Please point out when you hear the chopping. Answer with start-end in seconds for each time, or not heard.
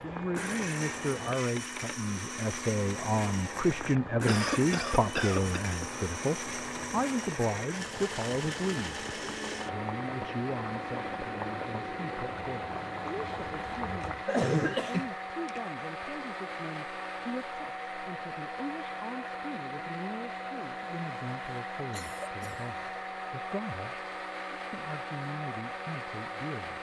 not heard.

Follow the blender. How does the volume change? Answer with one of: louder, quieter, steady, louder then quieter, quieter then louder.
steady.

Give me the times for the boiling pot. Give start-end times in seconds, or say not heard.
0.0-14.2.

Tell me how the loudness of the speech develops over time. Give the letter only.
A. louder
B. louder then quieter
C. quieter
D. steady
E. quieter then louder
C.